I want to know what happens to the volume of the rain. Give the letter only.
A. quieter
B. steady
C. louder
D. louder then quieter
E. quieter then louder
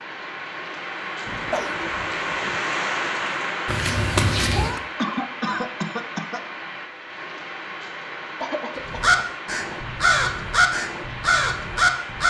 A.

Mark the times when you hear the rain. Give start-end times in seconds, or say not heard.
0.0-12.2.